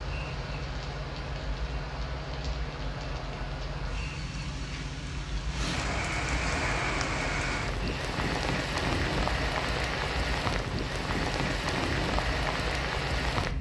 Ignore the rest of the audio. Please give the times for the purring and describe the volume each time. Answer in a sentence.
You can hear the purring from 0.0 to 13.5 s, at a steady volume.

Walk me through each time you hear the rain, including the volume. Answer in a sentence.
You can hear the rain from 0.0 to 13.5 s, getting louder.